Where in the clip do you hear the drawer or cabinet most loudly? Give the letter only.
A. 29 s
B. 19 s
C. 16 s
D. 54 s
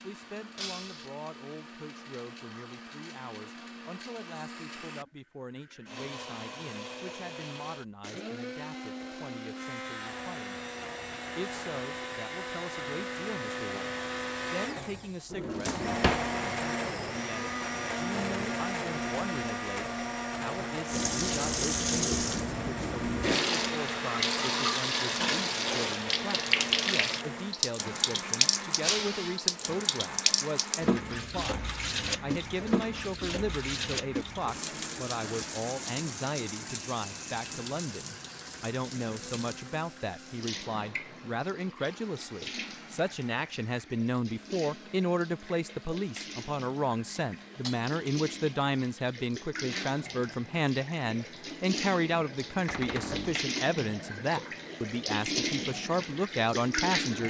C.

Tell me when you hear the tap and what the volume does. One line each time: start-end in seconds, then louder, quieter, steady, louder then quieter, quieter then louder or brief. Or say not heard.
20.9-57.2 quieter then louder.